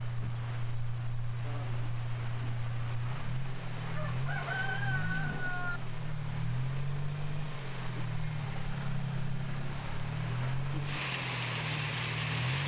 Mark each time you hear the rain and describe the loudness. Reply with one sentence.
You can hear the rain from 0.0 to 12.6 s, getting louder.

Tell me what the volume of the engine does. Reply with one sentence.
The volume of the engine stays about the same.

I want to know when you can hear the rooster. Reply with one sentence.
You can hear the rooster from 4.0 to 5.8 s.